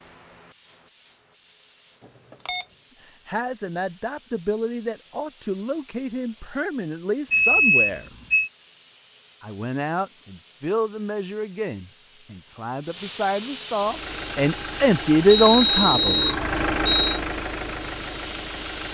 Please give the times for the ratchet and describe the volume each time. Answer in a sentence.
You can't hear the ratchet here.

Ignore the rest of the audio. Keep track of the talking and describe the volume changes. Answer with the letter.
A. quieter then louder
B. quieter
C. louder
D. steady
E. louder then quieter
C.